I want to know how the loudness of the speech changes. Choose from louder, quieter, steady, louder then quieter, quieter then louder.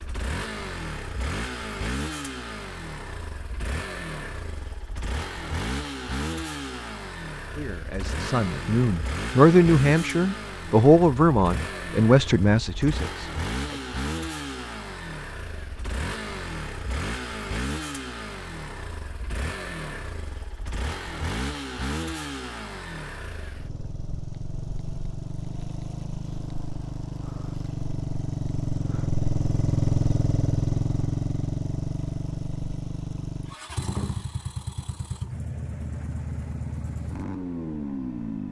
louder then quieter.